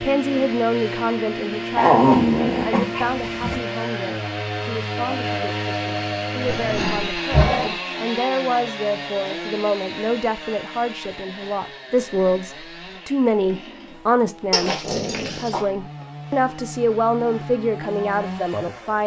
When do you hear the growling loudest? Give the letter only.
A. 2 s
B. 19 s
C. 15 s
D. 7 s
A.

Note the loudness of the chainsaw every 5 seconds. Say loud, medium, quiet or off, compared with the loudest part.
loud, loud, medium, medium.